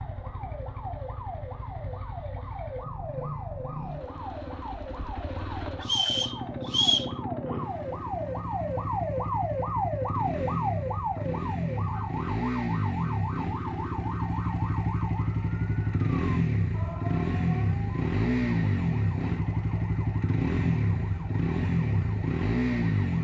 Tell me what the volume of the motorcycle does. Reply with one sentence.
The volume of the motorcycle goes up.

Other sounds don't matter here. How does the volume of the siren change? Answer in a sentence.
The loudness of the siren goes up, then down.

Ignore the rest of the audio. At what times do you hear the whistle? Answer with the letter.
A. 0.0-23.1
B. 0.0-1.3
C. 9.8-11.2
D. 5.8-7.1
D.